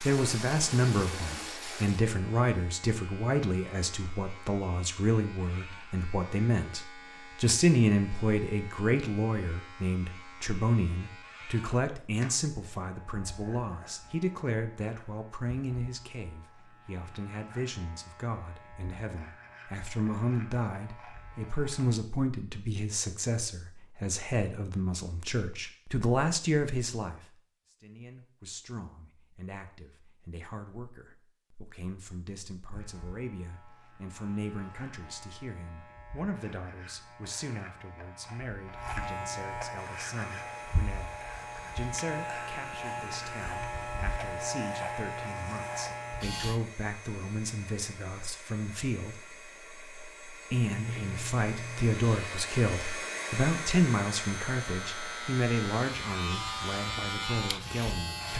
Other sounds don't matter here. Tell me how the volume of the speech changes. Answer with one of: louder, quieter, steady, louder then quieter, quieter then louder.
quieter then louder.